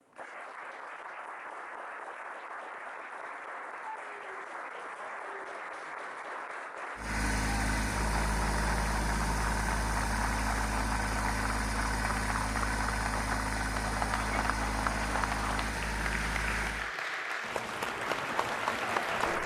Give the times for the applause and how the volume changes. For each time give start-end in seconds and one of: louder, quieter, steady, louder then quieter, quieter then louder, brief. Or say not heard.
0.0-19.4 louder.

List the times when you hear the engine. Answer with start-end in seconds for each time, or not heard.
7.0-16.9.